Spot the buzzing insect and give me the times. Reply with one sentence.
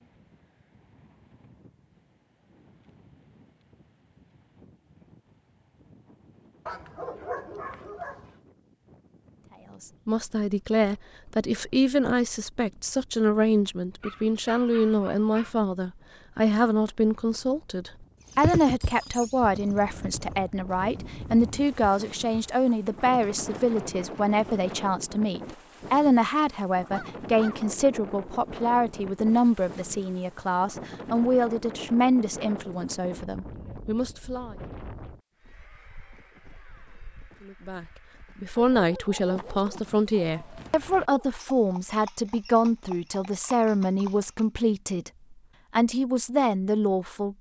You can't hear the buzzing insect here.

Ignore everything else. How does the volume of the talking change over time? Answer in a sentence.
The volume of the talking stays about the same.